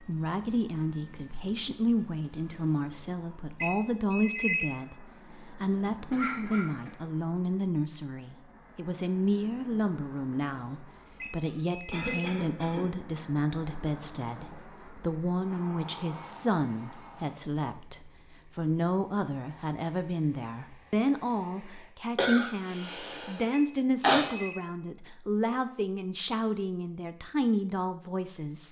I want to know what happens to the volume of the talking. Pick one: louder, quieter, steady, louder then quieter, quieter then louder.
steady.